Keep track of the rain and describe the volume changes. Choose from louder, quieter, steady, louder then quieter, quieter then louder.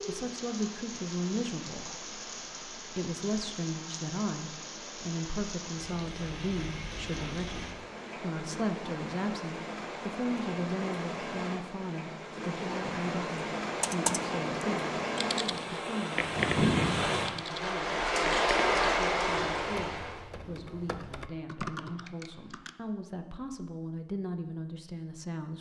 louder.